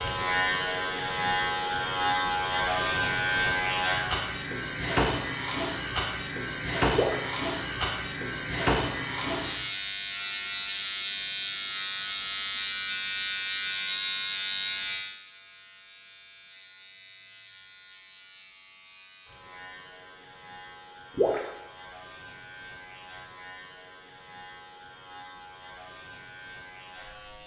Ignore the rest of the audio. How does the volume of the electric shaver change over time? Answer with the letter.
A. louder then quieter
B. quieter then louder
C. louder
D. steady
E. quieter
E.